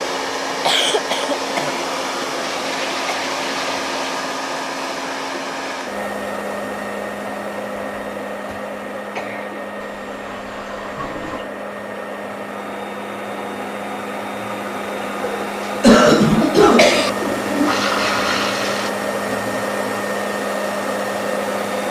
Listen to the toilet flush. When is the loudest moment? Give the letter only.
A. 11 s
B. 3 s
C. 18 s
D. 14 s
C.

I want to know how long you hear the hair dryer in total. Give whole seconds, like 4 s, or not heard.
22 s.